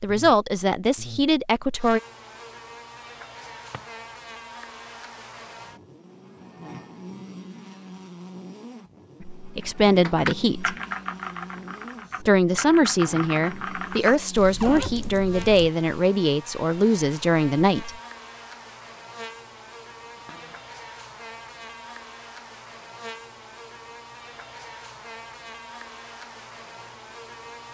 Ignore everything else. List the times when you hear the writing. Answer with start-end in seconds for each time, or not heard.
not heard.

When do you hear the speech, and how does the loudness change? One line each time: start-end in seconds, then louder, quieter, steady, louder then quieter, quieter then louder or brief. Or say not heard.
0.0-2.0 brief
9.2-10.8 brief
12.2-17.9 steady.